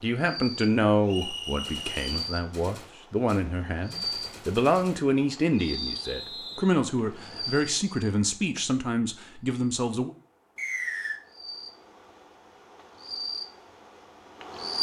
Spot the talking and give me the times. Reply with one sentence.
The talking can be heard from 0.0 to 10.2 s.